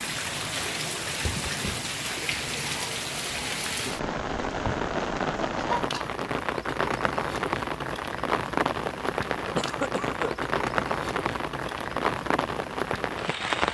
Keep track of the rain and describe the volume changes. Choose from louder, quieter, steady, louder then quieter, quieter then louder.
steady.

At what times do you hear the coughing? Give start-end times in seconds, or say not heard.
1.2-1.9, 5.5-6.1, 9.6-10.3.